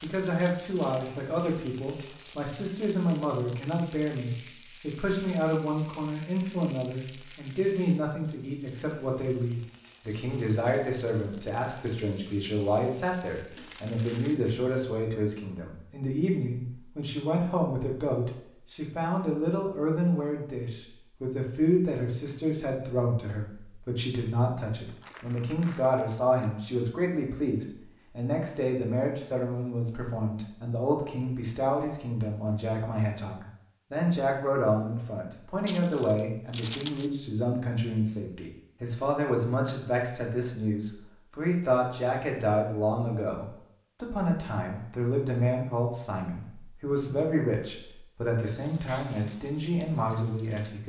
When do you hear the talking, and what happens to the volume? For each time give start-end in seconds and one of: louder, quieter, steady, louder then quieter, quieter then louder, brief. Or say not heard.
0.0-50.8 steady.